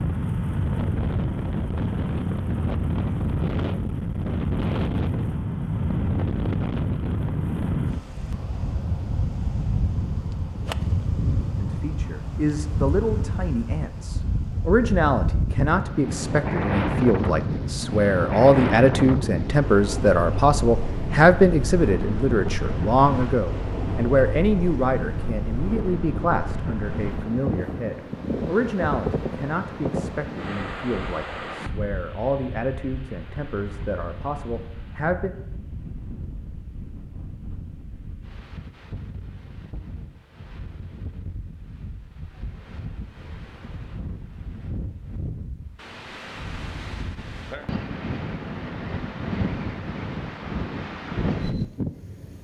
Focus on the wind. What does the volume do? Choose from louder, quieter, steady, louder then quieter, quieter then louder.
quieter then louder.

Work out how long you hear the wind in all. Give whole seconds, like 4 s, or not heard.
52 s.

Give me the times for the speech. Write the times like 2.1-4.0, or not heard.
11.6-35.3.